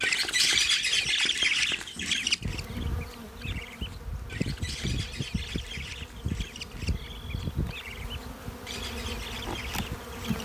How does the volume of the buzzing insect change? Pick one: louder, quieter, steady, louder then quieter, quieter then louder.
louder.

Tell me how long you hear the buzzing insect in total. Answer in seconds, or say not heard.
10 s.